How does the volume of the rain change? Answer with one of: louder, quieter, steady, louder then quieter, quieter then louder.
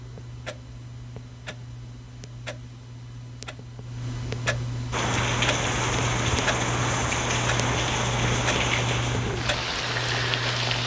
steady.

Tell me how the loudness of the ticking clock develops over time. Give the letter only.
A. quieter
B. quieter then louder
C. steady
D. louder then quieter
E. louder
E.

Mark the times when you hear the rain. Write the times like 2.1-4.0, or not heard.
4.9-10.8.